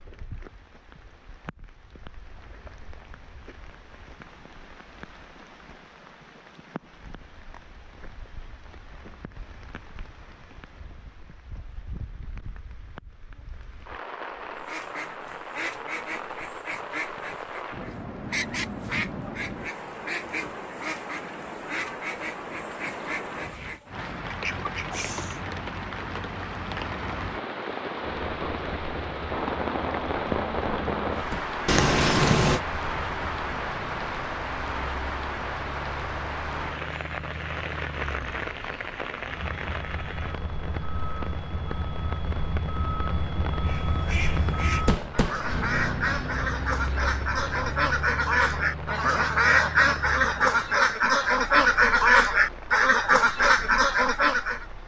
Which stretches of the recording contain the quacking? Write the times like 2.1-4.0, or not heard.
14.6-25.4, 43.6-54.6.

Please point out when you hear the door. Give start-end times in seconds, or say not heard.
not heard.